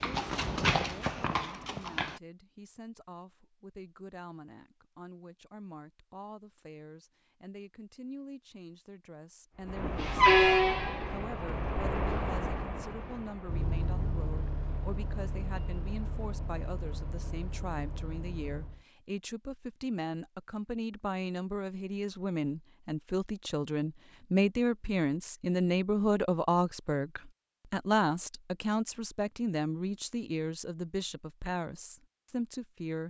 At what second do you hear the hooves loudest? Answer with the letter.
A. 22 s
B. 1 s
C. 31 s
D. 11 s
B.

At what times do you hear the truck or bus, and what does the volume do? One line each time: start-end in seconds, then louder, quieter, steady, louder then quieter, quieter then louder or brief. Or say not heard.
9.7-18.8 quieter.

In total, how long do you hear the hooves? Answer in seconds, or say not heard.
2 s.